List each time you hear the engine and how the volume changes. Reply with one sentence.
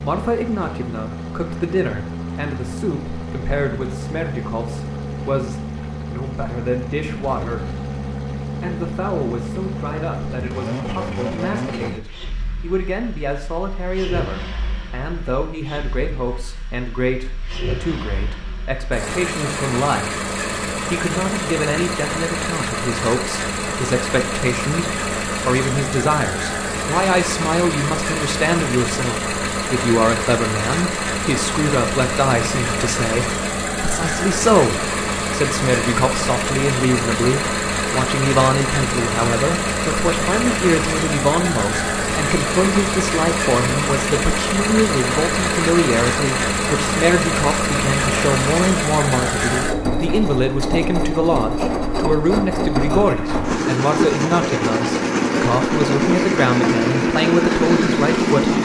The engine can be heard from 0.0 to 58.6 s, getting louder.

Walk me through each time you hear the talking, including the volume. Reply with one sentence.
The talking can be heard from 0.0 to 7.8 s, at a steady volume; and from 8.6 to 58.5 s, getting louder.